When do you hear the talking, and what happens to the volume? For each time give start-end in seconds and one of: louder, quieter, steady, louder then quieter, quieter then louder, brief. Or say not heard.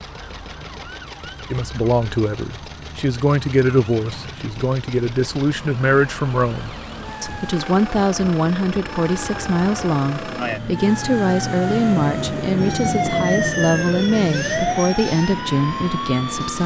1.5-16.6 steady.